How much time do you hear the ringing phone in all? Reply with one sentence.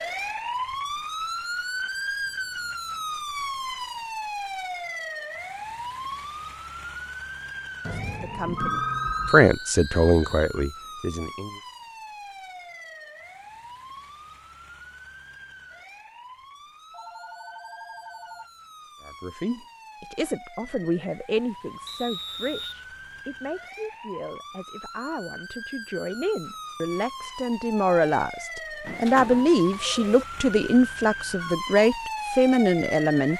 You can hear the ringing phone for 5 seconds altogether.